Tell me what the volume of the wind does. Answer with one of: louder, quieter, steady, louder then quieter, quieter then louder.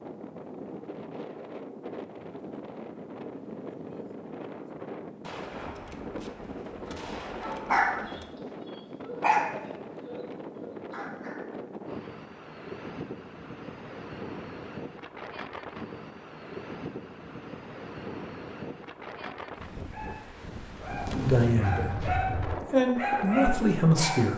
steady.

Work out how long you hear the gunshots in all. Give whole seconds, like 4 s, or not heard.
5 s.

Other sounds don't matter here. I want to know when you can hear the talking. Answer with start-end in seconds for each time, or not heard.
21.1-24.3.